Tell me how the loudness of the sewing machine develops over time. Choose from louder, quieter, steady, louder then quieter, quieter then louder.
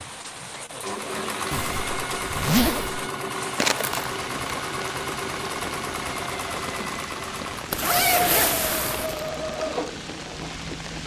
steady.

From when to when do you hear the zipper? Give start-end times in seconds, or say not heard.
1.5-3.0, 7.7-9.2.